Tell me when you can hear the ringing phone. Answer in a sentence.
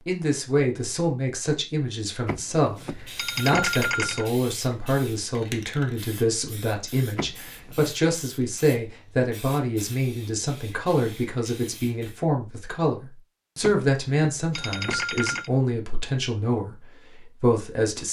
You can hear the ringing phone from 2.2 to 4.3 s, from 7.2 to 7.8 s and from 13.6 to 15.5 s.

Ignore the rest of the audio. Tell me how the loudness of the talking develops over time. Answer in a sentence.
The volume of the talking stays about the same.